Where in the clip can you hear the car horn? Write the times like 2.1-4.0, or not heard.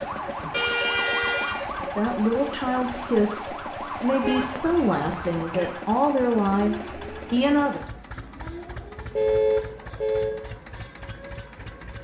0.5-1.7, 4.2-5.7, 9.2-10.4.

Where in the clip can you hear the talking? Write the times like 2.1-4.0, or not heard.
1.8-7.8.